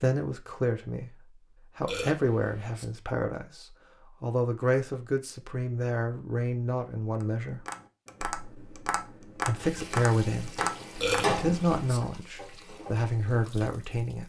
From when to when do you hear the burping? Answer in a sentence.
You can hear the burping from 1.8 to 2.9 s and from 10.9 to 12.0 s.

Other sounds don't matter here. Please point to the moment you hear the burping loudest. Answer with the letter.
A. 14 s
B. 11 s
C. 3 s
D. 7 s
B.